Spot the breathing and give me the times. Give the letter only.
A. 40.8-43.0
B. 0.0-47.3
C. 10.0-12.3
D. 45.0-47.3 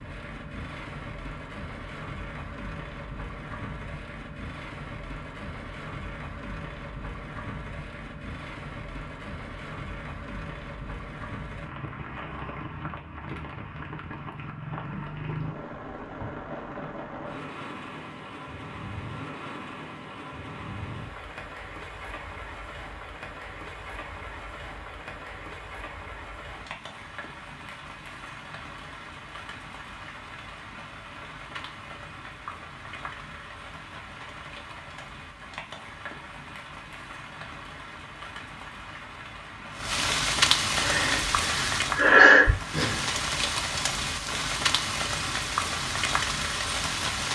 A.